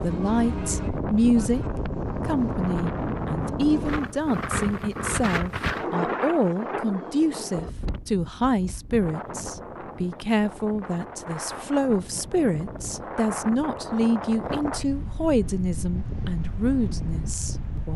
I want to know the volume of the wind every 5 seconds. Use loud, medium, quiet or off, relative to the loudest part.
loud, loud, medium, medium.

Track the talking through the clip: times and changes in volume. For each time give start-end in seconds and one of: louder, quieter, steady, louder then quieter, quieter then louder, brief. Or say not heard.
0.0-17.9 steady.